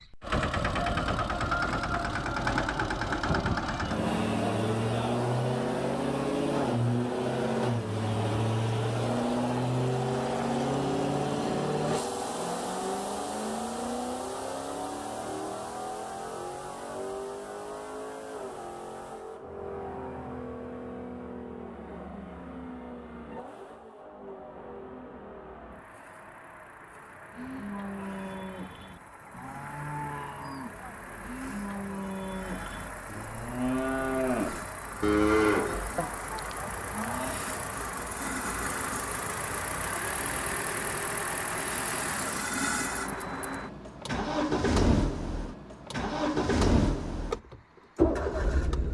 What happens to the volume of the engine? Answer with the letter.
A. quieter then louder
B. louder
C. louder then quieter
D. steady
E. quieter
A.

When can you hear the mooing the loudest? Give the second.
35 s.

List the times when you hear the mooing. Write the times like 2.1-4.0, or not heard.
27.3-37.4.